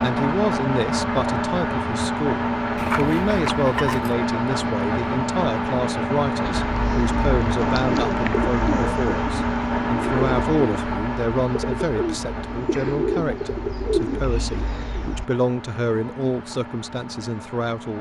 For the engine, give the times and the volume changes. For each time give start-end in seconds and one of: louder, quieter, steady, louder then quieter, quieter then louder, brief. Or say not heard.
0.0-17.9 quieter.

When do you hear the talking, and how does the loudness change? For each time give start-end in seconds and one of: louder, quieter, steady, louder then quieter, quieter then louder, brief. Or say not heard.
0.0-17.9 steady.